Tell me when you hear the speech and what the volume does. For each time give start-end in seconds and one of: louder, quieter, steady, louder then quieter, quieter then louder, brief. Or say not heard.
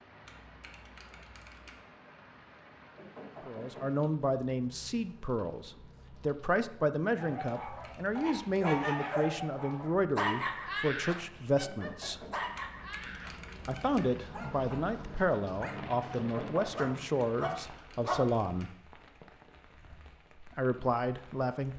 3.5-12.2 steady
13.7-18.7 steady
20.4-21.7 brief.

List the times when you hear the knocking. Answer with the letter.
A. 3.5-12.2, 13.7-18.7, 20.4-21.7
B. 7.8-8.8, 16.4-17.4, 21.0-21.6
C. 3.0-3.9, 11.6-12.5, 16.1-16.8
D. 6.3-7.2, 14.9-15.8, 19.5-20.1
C.